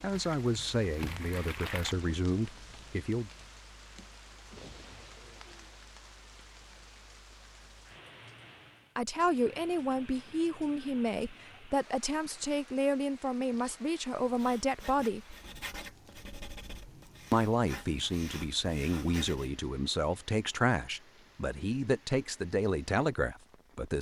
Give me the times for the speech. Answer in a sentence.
The speech can be heard from 0.0 to 3.3 s, from 8.9 to 15.3 s and from 17.3 to 23.9 s.